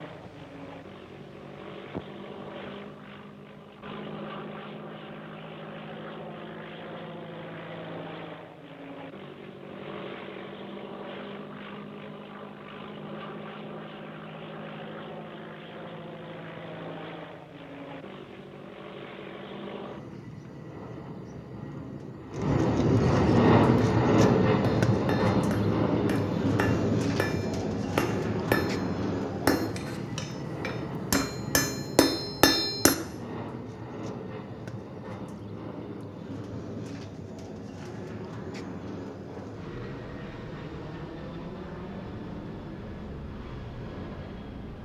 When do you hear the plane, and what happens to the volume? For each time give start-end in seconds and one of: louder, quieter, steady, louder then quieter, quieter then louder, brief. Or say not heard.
0.0-44.8 louder then quieter.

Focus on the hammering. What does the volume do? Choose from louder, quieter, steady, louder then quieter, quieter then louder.
louder.